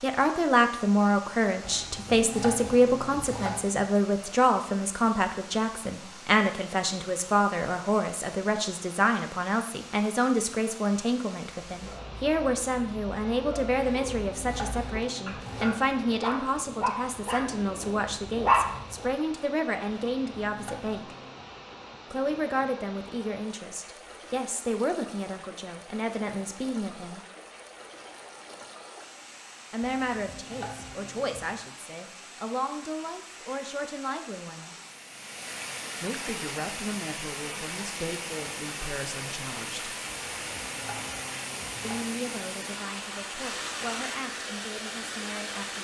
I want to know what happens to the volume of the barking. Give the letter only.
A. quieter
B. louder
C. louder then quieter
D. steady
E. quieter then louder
B.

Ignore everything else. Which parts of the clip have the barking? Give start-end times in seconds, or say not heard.
11.7-19.1.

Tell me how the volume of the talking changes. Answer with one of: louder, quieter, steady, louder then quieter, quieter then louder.
quieter.